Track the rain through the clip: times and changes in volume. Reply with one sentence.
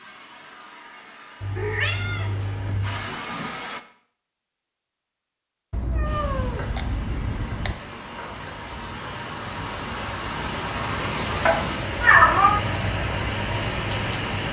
You can hear the rain from 6.0 to 14.4 s, getting louder.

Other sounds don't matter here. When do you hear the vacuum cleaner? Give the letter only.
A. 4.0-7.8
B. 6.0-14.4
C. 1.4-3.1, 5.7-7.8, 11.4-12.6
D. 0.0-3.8
D.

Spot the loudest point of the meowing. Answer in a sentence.
The loudest moment of the meowing is at 12 seconds.